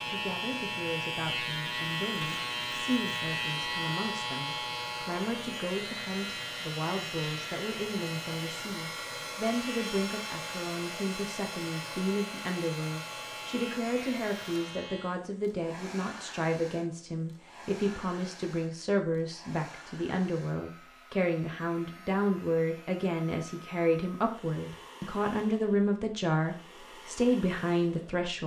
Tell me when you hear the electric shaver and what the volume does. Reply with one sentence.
The electric shaver can be heard from 0.0 to 15.2 s, getting quieter.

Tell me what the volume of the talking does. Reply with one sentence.
The loudness of the talking goes up.